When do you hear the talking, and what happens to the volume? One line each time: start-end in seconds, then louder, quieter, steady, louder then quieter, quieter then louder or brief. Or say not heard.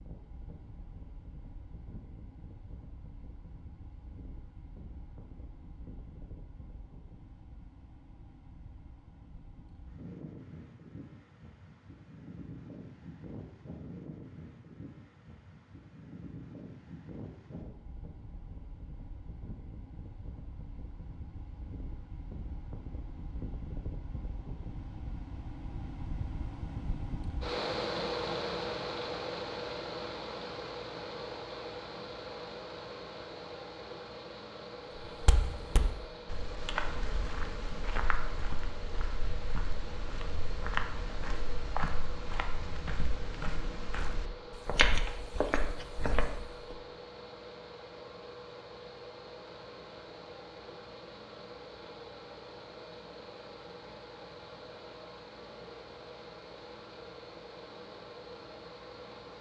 not heard.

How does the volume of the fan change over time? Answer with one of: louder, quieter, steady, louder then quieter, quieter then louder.
louder then quieter.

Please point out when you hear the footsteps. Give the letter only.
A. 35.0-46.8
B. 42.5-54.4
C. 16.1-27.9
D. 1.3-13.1
A.